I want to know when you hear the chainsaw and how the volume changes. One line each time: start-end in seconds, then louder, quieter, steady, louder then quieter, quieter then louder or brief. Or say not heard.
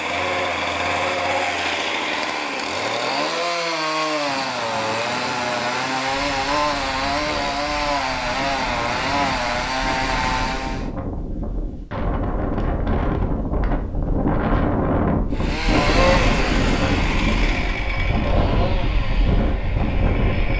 0.0-10.9 steady
15.3-20.5 quieter.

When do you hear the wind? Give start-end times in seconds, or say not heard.
4.2-20.5.